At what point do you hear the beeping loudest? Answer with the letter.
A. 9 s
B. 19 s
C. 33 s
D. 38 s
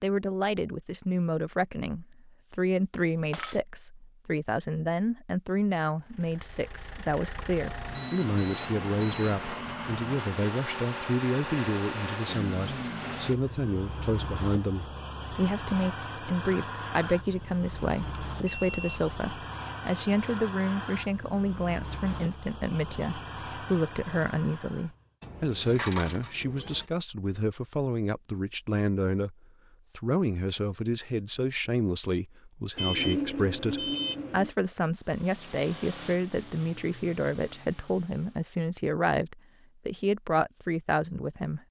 C.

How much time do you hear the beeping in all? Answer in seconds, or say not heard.
5 s.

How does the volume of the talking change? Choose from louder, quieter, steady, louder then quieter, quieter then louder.
steady.